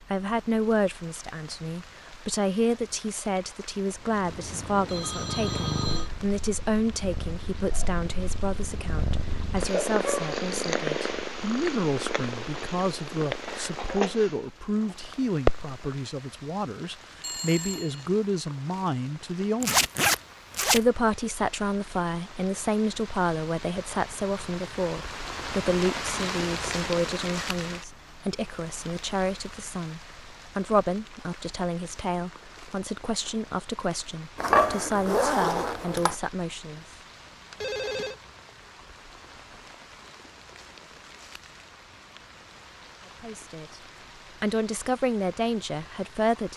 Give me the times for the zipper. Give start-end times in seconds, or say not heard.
19.6-20.8, 34.4-36.1.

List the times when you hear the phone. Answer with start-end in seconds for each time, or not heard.
4.7-6.1, 17.2-18.1, 37.5-38.1.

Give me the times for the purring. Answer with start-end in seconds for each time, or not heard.
4.0-16.0.